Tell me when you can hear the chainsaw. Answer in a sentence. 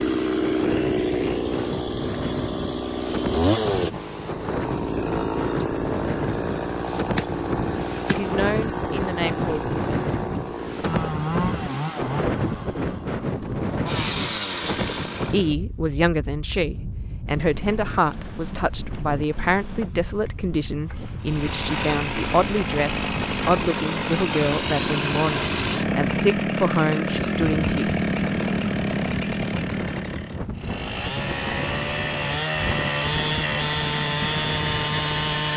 The chainsaw can be heard from 0.0 to 15.5 s and from 21.2 to 35.5 s.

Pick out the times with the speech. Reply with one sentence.
The speech can be heard from 8.1 to 9.7 s and from 15.3 to 27.8 s.